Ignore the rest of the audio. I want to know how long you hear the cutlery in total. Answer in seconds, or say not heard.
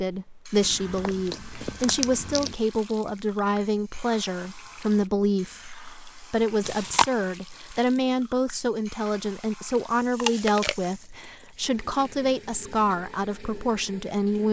not heard.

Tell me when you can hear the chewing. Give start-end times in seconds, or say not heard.
0.6-2.5, 6.6-7.2, 10.1-12.1.